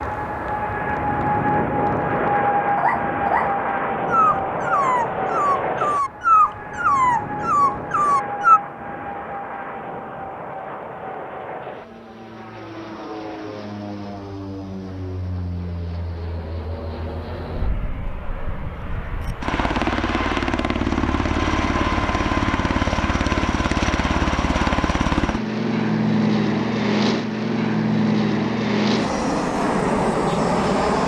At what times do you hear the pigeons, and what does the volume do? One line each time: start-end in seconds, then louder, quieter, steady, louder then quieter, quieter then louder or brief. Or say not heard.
not heard.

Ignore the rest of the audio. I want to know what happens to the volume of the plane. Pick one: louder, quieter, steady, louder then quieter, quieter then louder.
quieter then louder.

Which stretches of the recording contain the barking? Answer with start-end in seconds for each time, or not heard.
2.8-8.6.